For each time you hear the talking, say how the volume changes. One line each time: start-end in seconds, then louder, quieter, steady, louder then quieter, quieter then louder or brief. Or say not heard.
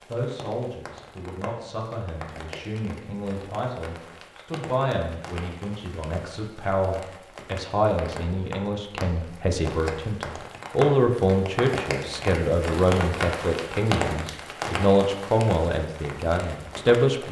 0.1-17.2 louder.